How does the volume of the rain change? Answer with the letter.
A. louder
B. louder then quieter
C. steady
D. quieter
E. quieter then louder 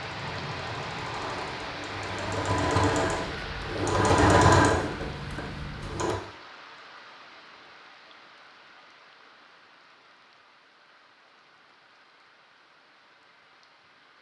D.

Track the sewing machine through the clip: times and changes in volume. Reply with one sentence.
You can hear the sewing machine from 0.0 to 6.2 s, getting louder then quieter.